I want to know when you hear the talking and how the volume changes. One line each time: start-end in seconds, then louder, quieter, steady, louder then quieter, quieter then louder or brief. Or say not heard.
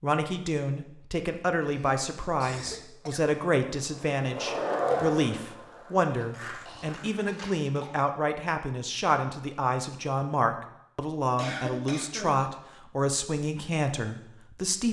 0.0-14.8 steady.